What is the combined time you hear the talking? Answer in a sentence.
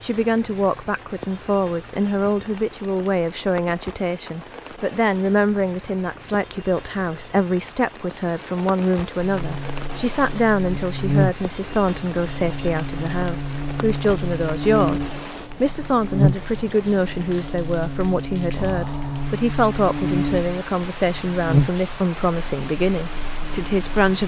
You can hear the talking for 24 seconds altogether.